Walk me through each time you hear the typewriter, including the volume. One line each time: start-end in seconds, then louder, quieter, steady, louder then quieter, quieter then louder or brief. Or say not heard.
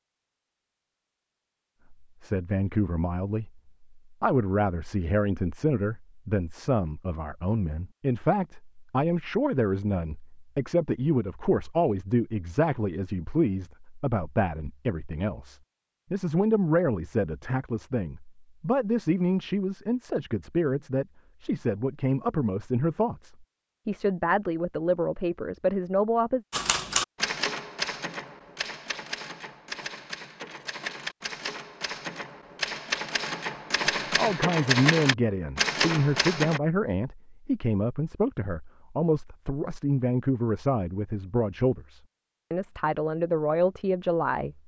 26.5-36.6 quieter then louder.